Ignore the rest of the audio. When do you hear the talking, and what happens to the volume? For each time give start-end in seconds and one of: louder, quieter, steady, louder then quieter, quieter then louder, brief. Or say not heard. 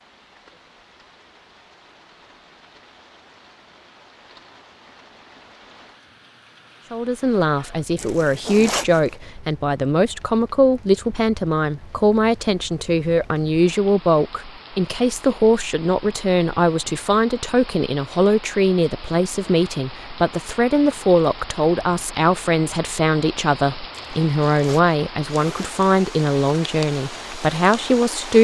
6.9-28.3 steady.